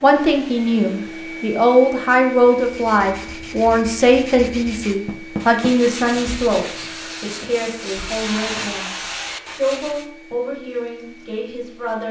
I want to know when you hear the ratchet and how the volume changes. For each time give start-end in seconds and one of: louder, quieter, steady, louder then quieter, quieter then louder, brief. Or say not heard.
not heard.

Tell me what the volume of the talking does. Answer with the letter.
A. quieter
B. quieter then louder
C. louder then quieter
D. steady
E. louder
A.